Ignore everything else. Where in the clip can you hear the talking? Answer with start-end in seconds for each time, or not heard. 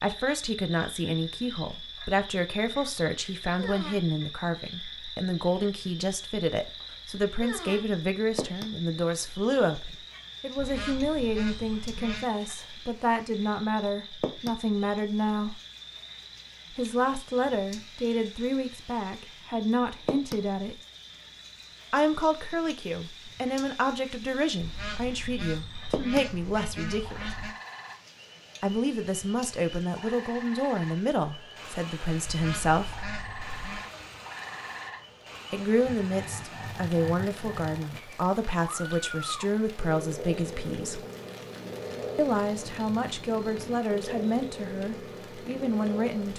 0.0-15.6, 16.7-20.8, 21.9-27.4, 28.6-33.0, 35.5-41.0, 42.1-46.3.